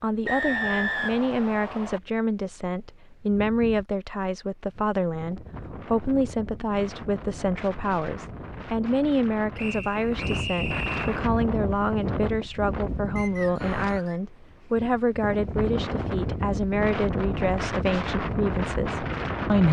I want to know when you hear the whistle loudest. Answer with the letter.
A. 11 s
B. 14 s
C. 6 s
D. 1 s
D.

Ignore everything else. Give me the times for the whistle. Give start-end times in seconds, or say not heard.
0.2-2.0, 9.6-11.2, 13.2-14.2.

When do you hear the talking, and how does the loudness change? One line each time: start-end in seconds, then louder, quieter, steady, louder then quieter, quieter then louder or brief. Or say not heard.
0.0-19.6 steady.